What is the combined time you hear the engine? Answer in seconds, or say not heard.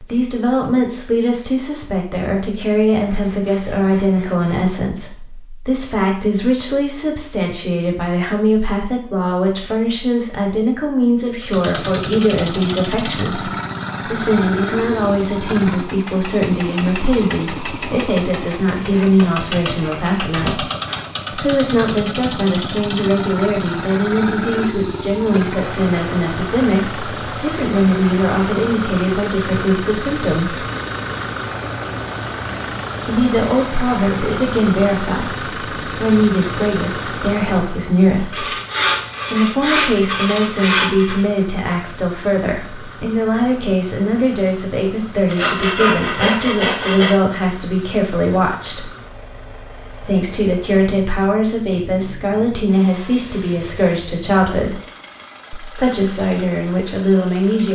46 s.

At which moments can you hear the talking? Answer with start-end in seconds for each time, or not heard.
0.0-20.6, 21.3-30.6, 33.0-38.5, 39.3-48.9, 50.0-54.9, 55.5-57.7.